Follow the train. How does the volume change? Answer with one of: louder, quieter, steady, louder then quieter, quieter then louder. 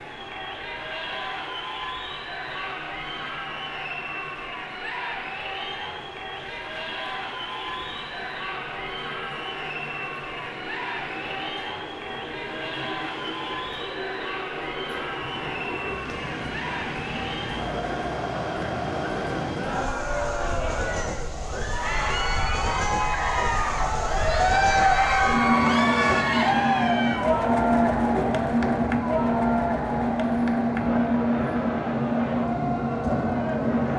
louder.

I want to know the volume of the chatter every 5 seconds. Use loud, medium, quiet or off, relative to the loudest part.
medium, medium, medium, medium, loud, loud, medium.